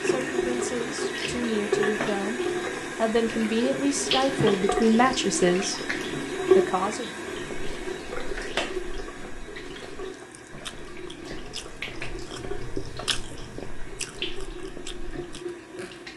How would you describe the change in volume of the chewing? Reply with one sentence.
The loudness of the chewing goes up, then down.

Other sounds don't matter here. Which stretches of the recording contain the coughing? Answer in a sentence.
You can't hear the coughing here.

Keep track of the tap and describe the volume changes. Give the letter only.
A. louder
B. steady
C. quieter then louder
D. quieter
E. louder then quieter
D.